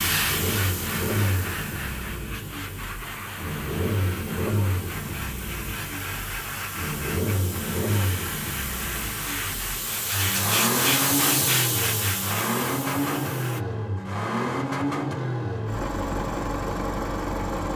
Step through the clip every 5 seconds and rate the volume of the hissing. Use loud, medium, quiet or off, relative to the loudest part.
medium, medium, loud, off.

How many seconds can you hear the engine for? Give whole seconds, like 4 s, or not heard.
18 s.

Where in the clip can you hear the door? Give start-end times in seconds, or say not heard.
not heard.